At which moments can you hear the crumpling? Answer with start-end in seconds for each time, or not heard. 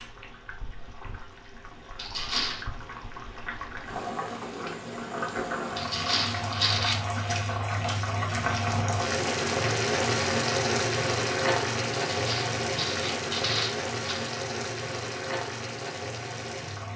1.9-2.6, 5.8-7.0, 12.1-14.3.